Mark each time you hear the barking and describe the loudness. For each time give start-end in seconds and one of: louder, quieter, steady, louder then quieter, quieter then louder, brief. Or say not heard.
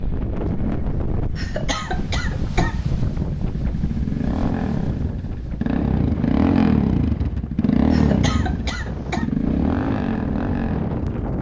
not heard.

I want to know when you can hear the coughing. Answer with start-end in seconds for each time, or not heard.
1.4-2.8, 7.9-9.3.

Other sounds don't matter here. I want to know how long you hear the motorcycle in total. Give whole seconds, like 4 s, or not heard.
11 s.